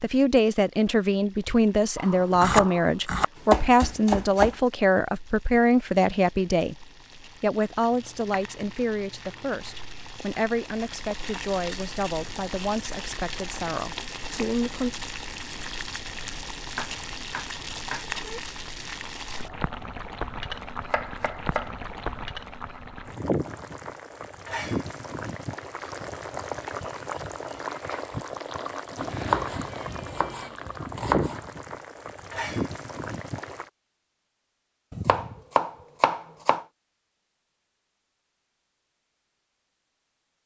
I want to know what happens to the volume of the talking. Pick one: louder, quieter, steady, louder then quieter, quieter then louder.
quieter.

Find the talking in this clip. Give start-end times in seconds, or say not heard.
0.0-14.9.